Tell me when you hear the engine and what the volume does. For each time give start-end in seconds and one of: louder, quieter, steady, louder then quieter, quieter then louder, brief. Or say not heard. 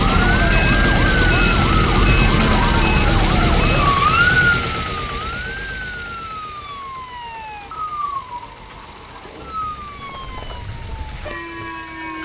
0.0-12.1 quieter.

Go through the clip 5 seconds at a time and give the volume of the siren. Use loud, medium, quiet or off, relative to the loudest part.
loud, quiet, quiet.